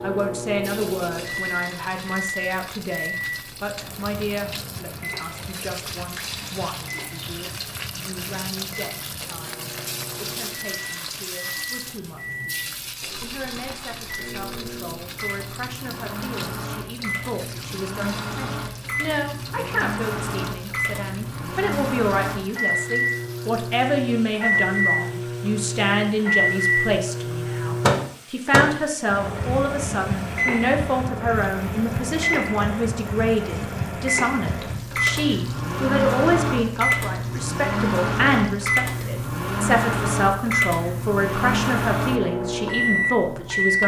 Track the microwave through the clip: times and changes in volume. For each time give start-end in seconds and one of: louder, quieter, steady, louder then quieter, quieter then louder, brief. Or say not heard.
0.0-43.8 louder.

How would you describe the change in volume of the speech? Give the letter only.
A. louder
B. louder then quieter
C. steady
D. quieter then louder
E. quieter
D.